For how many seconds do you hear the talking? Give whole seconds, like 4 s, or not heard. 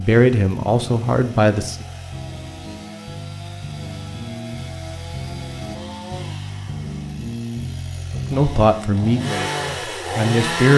4 s.